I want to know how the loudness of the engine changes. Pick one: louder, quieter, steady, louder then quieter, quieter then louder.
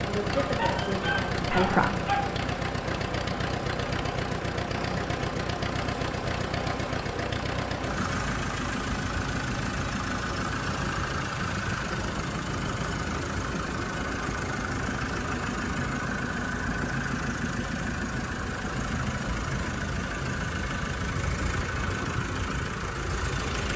steady.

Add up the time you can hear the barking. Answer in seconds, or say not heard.
2 s.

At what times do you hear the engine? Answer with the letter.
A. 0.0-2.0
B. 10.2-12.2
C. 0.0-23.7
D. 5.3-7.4
C.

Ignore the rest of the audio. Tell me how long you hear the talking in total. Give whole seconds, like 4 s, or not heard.
2 s.